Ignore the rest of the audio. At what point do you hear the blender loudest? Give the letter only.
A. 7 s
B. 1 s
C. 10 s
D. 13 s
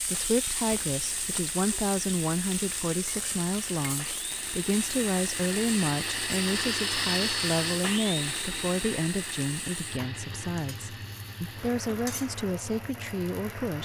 A.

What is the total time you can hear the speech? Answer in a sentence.
You can hear the speech for 14 seconds altogether.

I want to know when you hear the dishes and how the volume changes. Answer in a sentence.
The dishes can't be heard in this clip.